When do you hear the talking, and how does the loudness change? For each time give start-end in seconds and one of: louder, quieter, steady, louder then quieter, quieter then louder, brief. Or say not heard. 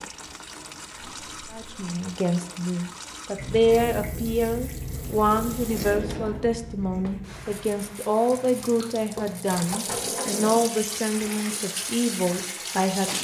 1.5-13.1 steady.